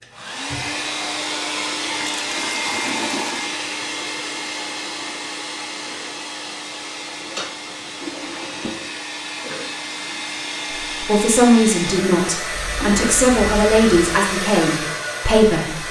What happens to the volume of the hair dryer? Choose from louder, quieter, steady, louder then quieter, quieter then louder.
quieter then louder.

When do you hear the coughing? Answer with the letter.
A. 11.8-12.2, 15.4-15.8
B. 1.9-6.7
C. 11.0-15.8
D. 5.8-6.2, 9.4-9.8
D.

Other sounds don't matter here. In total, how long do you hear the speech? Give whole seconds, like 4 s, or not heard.
5 s.